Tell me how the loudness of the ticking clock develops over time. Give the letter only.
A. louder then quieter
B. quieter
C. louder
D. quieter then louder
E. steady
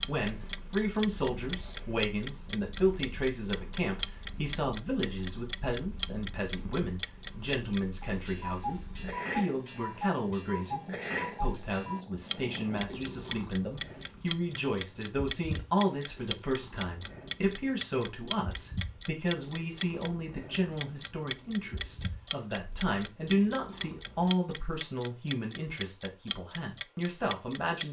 E.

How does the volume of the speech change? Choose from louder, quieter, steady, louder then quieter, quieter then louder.
steady.